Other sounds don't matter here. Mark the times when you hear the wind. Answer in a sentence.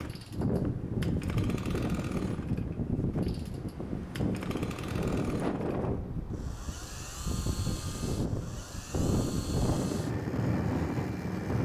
The wind can be heard from 0.0 to 11.5 s.